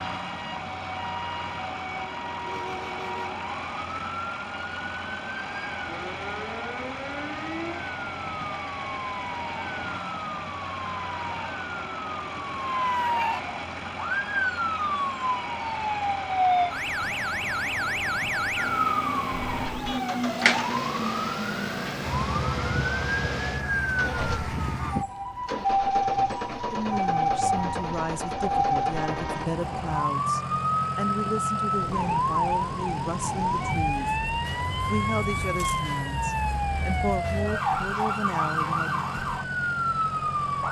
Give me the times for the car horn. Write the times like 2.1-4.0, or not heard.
2.5-3.4, 19.6-20.1, 28.9-29.6.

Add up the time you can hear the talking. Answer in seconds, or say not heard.
12 s.